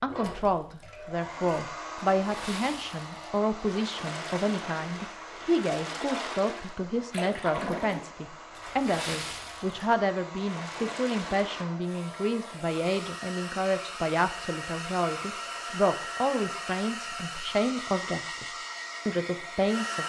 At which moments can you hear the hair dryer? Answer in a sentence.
You can hear the hair dryer from 0.0 to 20.0 s.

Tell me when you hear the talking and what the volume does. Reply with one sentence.
You can hear the talking from 0.0 to 20.0 s, at a steady volume.